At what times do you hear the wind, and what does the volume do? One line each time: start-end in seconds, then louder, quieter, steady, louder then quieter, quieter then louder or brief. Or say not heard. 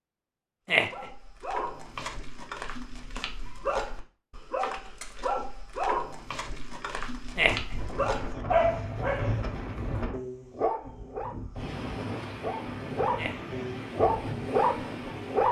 7.4-15.4 steady.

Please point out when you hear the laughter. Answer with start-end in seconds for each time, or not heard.
0.7-1.1, 7.3-7.8, 13.2-13.6.